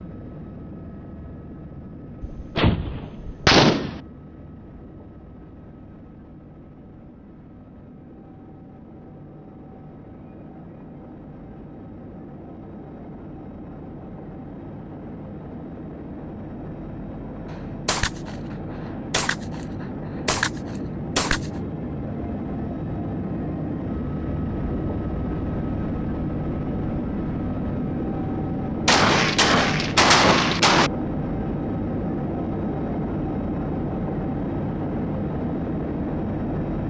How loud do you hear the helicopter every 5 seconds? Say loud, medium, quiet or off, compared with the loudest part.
quiet, quiet, quiet, medium, loud, loud, loud, loud.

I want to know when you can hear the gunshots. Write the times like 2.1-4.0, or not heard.
2.2-4.0, 17.9-21.5, 28.9-30.9.